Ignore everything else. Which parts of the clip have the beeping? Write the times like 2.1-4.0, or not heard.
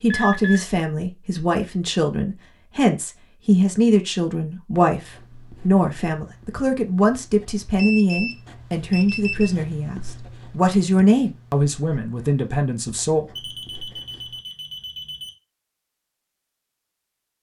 0.1-0.6, 7.8-9.5, 13.3-15.3.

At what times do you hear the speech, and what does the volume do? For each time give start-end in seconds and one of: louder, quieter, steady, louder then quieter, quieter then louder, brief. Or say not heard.
0.0-13.4 steady.